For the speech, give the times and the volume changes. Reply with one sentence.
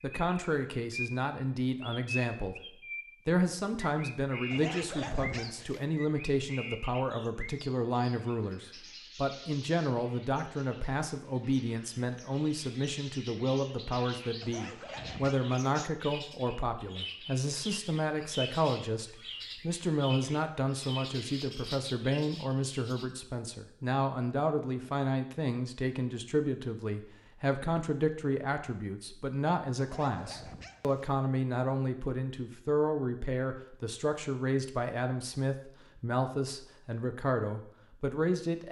The speech can be heard briefly from 0.0 to 2.5 s; and from 3.2 to 38.6 s, at a steady volume.